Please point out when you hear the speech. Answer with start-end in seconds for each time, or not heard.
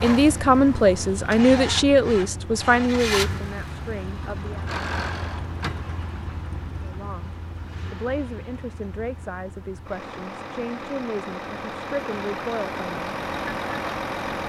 0.0-4.7, 6.8-7.3, 7.9-13.2.